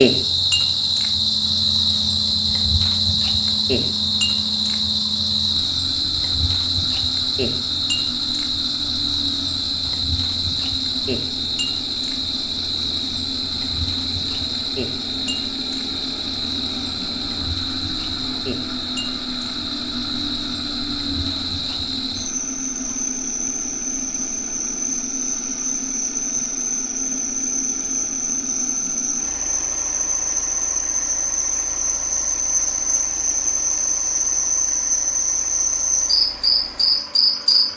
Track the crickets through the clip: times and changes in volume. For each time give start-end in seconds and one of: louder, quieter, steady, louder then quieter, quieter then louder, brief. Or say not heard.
0.0-37.7 quieter then louder.